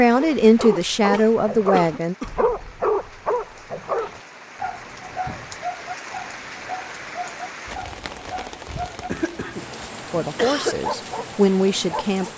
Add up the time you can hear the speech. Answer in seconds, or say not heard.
4 s.